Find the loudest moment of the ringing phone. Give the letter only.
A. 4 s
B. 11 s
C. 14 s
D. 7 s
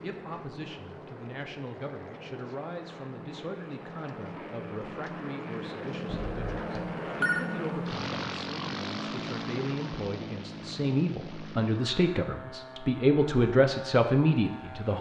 D.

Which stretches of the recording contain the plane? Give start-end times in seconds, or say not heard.
0.0-14.9.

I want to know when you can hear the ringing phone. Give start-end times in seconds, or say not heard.
6.0-7.5.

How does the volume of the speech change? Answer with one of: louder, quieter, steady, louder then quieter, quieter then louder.
louder.